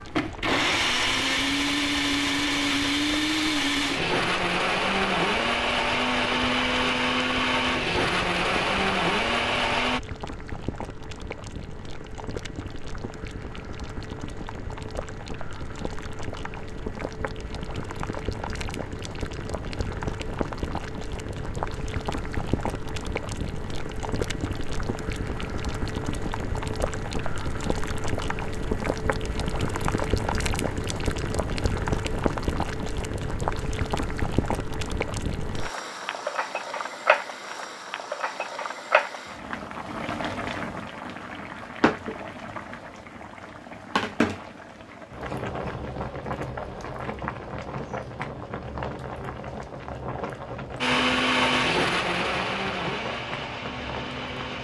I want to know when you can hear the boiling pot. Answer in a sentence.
The boiling pot can be heard from 0.0 to 54.5 s.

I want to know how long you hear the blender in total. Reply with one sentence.
The blender can be heard for 14 seconds in total.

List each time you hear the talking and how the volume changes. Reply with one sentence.
You can't hear the talking here.